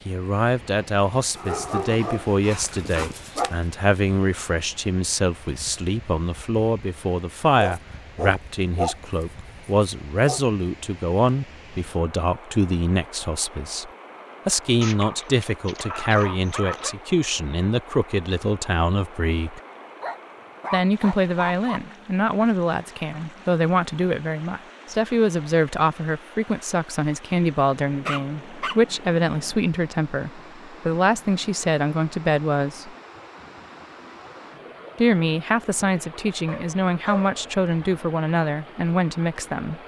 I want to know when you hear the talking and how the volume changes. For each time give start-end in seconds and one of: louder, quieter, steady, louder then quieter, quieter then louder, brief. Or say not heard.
0.1-19.6 steady
20.7-32.9 steady
35.0-39.8 steady.